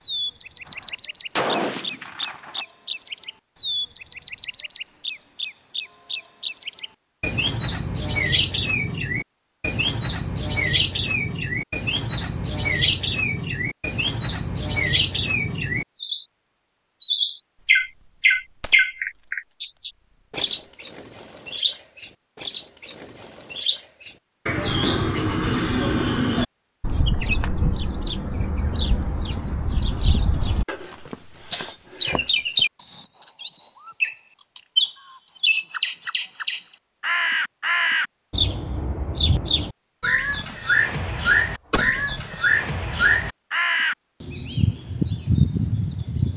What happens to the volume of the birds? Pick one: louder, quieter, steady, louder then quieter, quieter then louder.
steady.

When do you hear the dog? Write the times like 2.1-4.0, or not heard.
not heard.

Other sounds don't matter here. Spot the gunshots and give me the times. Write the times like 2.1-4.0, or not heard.
0.7-2.6, 17.6-19.3, 40.2-40.7, 41.7-42.6.